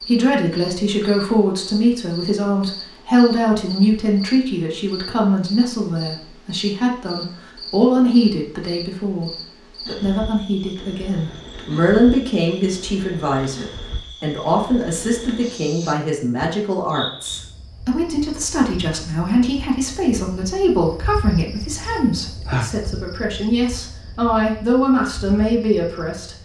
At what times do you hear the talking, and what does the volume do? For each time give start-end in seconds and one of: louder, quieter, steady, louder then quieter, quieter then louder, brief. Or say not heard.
0.1-26.4 steady.